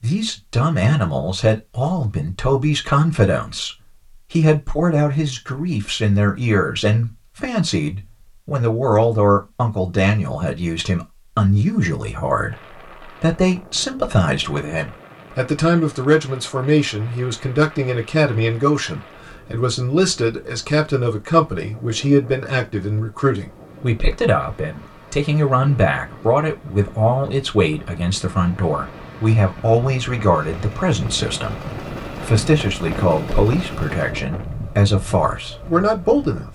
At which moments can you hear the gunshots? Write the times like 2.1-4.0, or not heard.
not heard.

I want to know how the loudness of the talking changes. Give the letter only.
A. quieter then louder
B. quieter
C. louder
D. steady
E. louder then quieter
D.